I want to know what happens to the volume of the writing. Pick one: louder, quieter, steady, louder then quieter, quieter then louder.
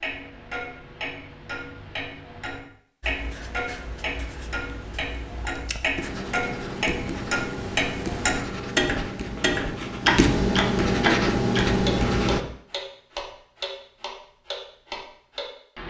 louder.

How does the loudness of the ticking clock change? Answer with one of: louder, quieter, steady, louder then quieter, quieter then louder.
louder then quieter.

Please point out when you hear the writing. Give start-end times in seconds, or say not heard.
3.0-12.4.